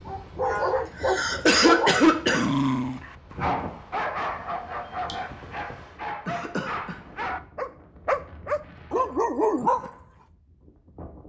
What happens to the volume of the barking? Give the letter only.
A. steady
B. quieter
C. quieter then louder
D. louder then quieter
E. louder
C.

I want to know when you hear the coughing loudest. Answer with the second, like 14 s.
2 s.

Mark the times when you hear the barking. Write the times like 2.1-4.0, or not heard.
0.1-9.9.